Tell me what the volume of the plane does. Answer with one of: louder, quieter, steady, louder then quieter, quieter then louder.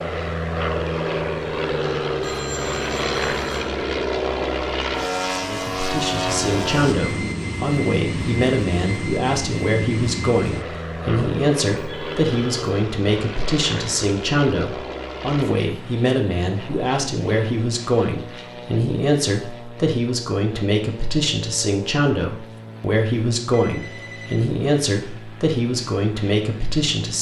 quieter.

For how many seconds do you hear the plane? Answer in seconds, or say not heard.
27 s.